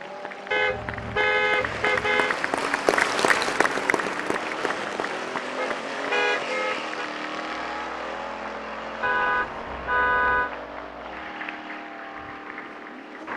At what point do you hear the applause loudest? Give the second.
3 s.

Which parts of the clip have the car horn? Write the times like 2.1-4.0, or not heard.
0.5-2.4, 5.5-7.0, 9.0-10.5.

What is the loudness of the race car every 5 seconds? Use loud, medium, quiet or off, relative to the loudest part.
loud, loud, medium.